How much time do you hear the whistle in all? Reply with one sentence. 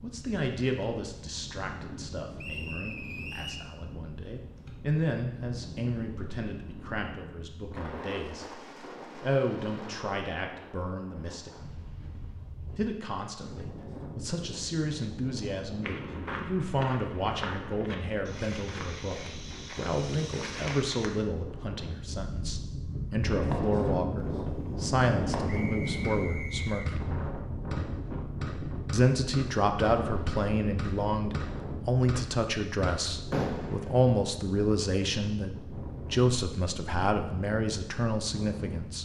You can hear the whistle for 3 seconds altogether.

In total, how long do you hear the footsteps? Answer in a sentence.
You can hear the footsteps for 5 seconds altogether.